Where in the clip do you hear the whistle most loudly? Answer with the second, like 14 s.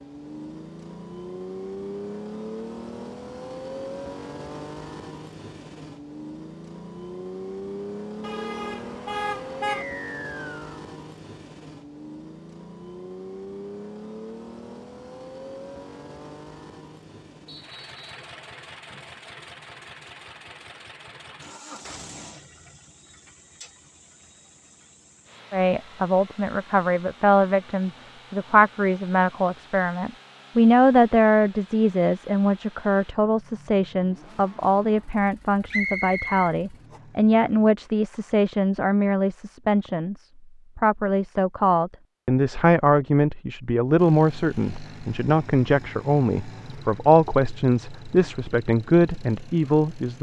36 s.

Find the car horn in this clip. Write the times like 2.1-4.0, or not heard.
8.2-9.8.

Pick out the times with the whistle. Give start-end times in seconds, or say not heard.
9.8-10.8, 17.4-18.2, 35.7-36.5.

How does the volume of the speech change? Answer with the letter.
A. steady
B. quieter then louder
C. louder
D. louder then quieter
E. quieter
A.